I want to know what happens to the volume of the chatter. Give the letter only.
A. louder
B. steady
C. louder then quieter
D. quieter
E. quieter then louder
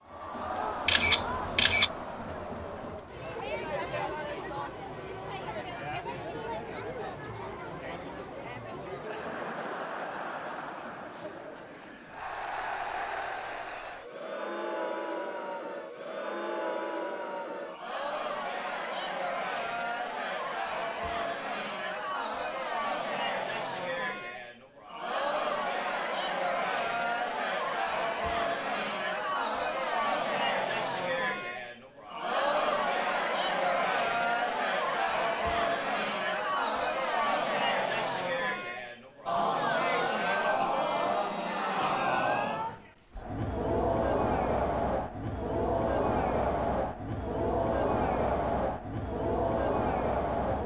A.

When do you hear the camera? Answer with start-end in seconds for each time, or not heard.
0.8-1.9.